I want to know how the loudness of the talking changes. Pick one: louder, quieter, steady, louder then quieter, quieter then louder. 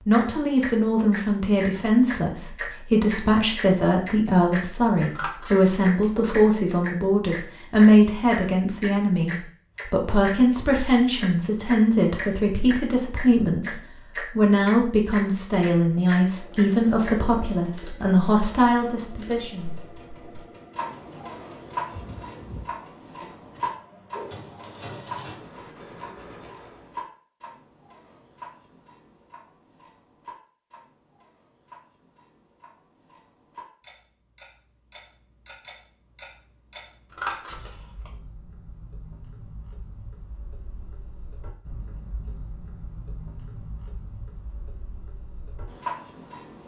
steady.